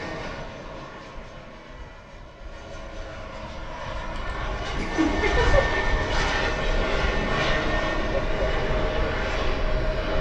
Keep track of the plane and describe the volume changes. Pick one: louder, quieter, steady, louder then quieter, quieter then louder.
louder.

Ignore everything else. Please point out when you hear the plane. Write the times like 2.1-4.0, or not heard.
0.0-10.1.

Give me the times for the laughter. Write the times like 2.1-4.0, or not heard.
4.2-5.8.